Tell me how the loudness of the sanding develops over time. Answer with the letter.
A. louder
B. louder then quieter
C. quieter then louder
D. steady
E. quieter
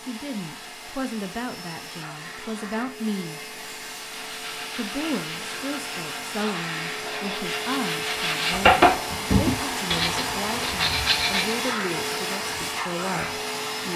B.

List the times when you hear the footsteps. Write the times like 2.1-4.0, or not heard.
not heard.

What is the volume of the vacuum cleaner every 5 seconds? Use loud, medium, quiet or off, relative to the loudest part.
medium, loud, loud.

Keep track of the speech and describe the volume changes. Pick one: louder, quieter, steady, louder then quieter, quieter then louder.
steady.